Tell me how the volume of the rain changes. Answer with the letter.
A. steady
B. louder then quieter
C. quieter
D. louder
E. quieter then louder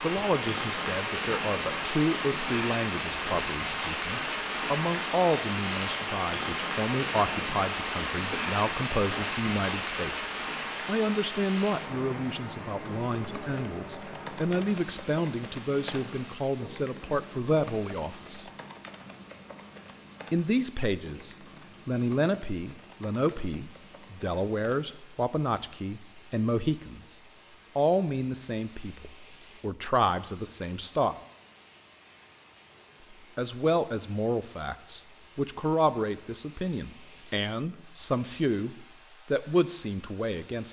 C.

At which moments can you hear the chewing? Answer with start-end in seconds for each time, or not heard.
not heard.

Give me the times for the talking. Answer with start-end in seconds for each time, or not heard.
0.0-18.5, 20.3-27.0, 27.8-31.1, 33.4-40.6.